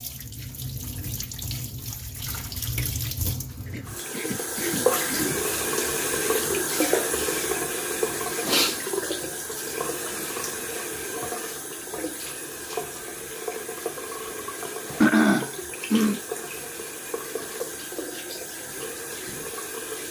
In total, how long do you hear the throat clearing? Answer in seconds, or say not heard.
3 s.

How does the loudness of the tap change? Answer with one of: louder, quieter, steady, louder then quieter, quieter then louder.
louder then quieter.